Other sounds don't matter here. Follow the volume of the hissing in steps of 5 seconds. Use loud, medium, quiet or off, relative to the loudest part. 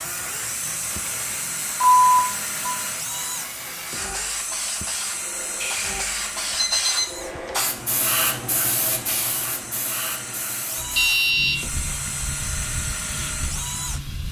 medium, loud, medium.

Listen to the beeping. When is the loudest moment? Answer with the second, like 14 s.
2 s.